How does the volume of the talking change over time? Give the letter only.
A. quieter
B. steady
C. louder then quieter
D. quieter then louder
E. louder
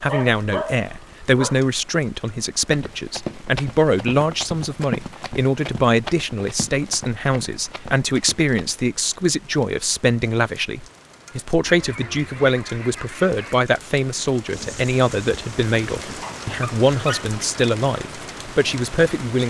B.